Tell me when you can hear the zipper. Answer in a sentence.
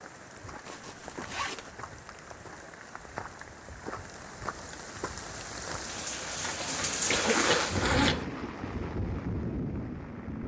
You can hear the zipper from 0.7 to 1.7 s and from 6.4 to 8.2 s.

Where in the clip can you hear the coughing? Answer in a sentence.
The coughing can be heard from 7.1 to 8.2 s.